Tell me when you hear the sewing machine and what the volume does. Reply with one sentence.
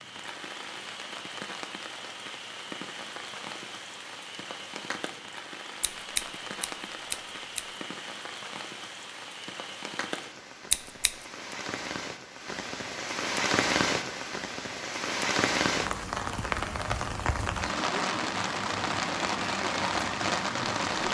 The sewing machine can't be heard in this clip.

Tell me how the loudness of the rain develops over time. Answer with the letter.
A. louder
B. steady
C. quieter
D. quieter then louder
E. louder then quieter
A.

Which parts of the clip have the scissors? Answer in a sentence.
The scissors can be heard from 5.8 to 7.8 s and from 10.7 to 11.2 s.